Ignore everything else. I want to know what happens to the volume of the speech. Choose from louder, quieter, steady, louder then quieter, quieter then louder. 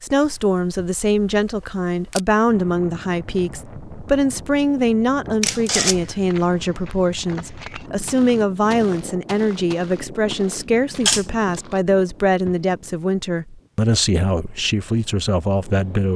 steady.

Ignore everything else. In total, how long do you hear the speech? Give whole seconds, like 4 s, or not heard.
16 s.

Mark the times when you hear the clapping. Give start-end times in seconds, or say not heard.
not heard.